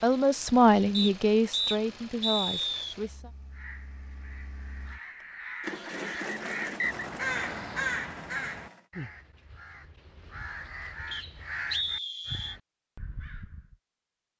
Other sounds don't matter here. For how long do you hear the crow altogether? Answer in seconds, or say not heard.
10 s.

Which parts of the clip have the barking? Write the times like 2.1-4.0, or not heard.
not heard.